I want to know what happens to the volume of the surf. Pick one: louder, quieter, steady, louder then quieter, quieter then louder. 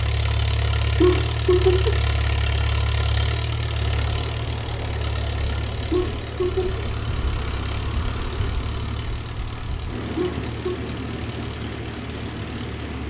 steady.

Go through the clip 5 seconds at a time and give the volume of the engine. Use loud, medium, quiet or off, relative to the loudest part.
loud, medium, medium.